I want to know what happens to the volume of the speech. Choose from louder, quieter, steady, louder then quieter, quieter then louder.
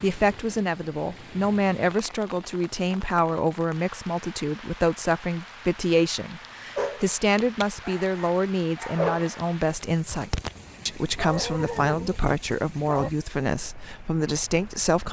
steady.